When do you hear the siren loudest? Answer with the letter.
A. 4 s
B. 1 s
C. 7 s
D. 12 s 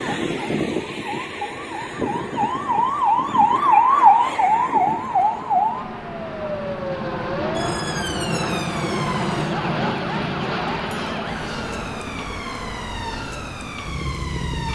A.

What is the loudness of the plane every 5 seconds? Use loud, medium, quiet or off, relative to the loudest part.
quiet, loud, loud.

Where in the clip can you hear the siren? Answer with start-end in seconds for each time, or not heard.
0.0-14.6.